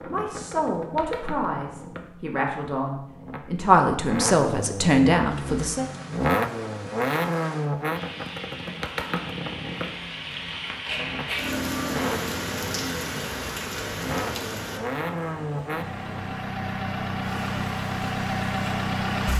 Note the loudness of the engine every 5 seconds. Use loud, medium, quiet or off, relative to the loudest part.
medium, loud, medium, loud.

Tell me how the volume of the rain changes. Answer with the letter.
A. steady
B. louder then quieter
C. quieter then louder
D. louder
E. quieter
B.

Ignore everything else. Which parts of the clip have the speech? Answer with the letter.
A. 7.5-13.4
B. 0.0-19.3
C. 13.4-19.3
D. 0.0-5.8
D.